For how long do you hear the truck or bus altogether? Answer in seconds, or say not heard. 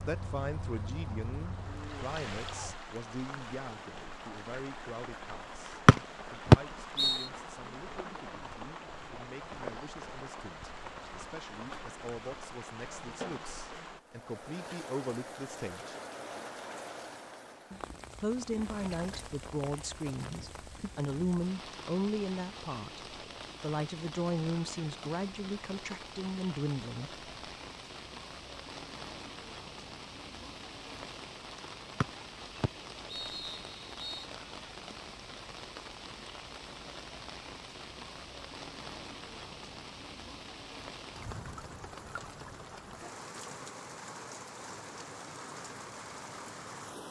3 s.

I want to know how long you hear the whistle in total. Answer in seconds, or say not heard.
4 s.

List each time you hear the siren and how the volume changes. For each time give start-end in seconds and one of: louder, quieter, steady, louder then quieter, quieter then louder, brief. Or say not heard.
not heard.